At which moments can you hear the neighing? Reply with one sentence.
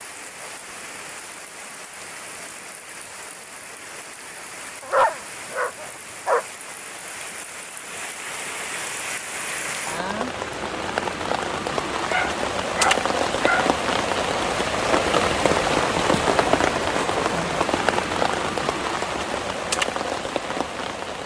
The neighing can't be heard in this clip.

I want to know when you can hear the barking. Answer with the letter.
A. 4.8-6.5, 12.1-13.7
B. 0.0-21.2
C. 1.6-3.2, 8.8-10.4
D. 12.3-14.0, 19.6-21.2
A.